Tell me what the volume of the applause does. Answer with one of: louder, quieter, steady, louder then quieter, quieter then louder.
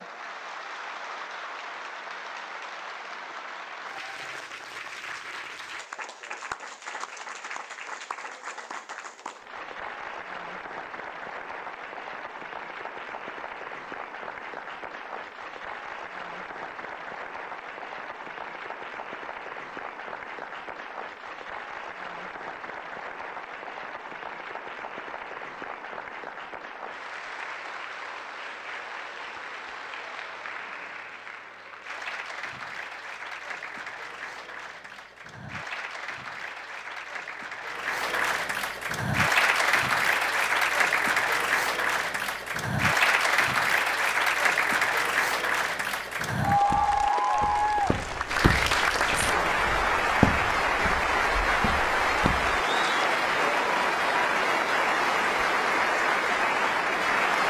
louder.